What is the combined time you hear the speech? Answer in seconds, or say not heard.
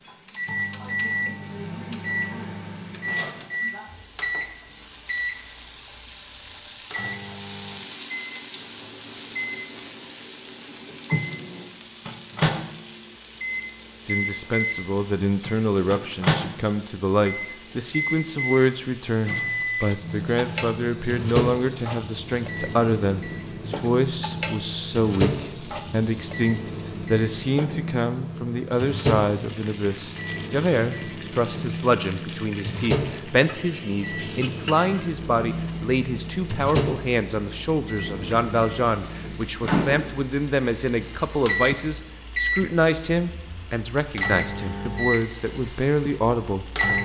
33 s.